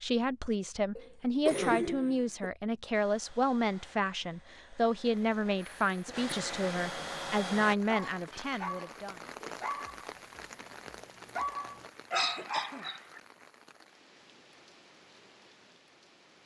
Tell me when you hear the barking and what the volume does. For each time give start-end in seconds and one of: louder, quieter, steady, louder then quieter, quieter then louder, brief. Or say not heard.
7.8-13.2 quieter then louder.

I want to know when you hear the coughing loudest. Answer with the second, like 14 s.
2 s.